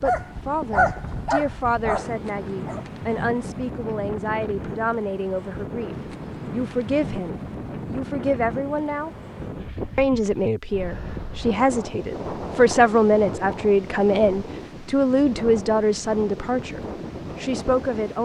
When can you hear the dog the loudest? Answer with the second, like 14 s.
1 s.